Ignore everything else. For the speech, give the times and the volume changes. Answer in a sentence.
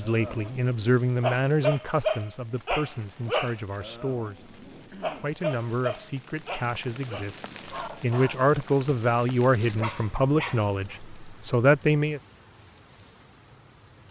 You can hear the speech from 0.0 to 12.2 s, getting quieter then louder.